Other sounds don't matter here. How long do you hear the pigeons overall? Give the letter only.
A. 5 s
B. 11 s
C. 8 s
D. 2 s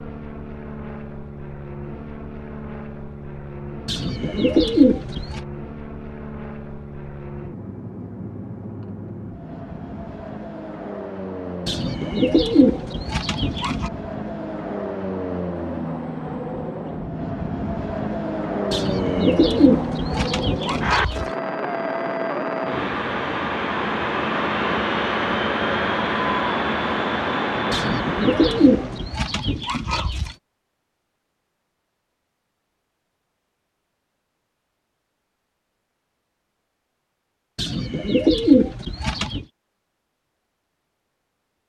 B.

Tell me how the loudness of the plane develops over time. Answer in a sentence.
The volume of the plane goes up.